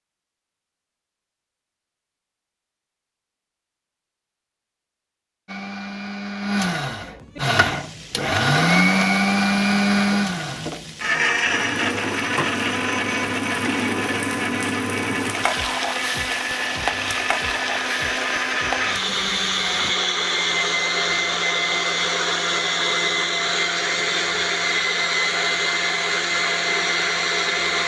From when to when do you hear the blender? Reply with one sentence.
The blender can be heard from 5.5 to 27.8 s.